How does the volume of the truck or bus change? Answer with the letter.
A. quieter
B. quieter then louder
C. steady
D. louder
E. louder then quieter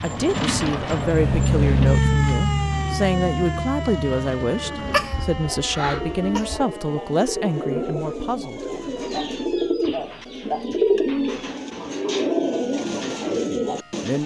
E.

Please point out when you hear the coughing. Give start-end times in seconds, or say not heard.
4.8-6.7.